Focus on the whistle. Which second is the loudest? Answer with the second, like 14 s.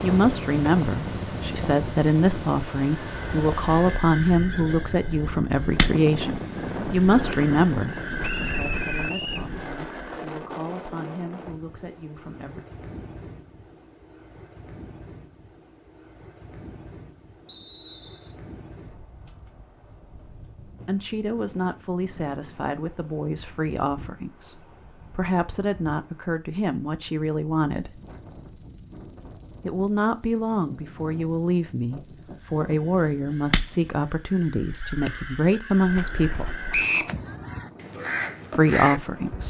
37 s.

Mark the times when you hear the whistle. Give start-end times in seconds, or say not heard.
8.2-9.5, 17.4-18.4, 36.7-37.1.